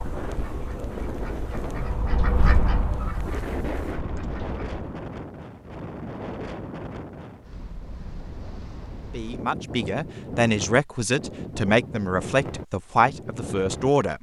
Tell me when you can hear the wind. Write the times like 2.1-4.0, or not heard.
0.0-14.1.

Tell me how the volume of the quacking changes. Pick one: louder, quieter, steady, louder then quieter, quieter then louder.
louder then quieter.